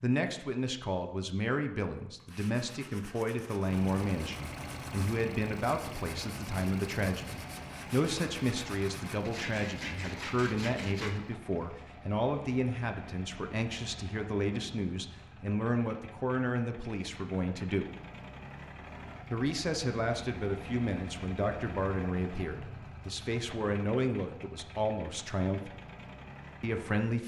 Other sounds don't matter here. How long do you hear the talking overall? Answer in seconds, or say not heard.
25 s.